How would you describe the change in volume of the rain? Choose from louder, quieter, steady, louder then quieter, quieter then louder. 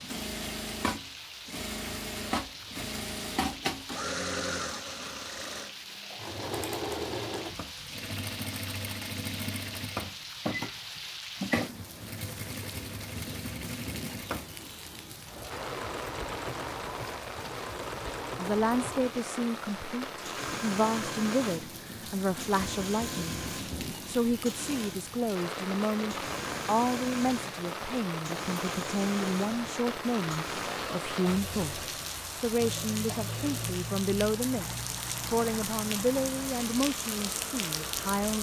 louder.